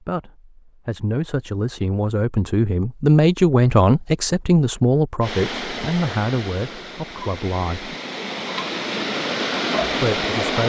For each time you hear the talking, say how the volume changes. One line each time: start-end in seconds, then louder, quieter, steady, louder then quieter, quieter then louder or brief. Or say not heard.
0.0-8.0 louder then quieter
9.9-10.6 brief.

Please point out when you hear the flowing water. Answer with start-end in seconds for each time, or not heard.
5.2-10.6.